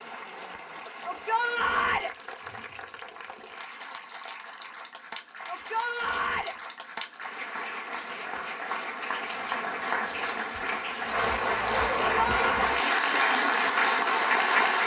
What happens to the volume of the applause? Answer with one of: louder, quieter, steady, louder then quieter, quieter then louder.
louder.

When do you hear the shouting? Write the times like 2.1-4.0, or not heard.
1.1-2.1, 5.5-6.5, 12.1-12.7.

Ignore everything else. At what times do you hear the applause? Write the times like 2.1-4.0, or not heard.
0.0-14.8.